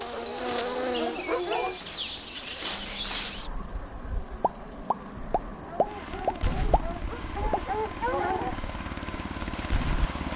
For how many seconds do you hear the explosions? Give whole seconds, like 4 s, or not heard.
3 s.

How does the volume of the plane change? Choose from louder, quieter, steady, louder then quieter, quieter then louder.
louder.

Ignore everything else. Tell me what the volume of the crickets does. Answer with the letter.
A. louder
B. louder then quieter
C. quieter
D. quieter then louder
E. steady
D.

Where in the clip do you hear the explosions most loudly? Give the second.
6 s.